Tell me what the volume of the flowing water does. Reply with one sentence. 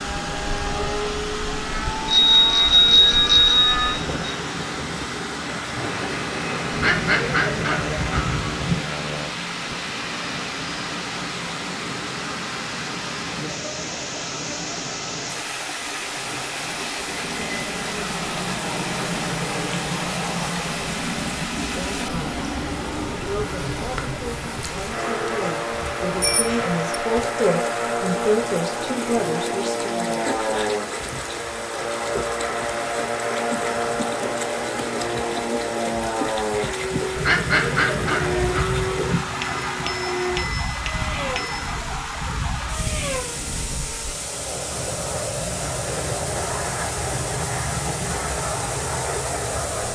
The loudness of the flowing water stays about the same.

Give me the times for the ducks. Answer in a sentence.
You can hear the ducks from 6.7 to 8.8 s and from 37.1 to 39.1 s.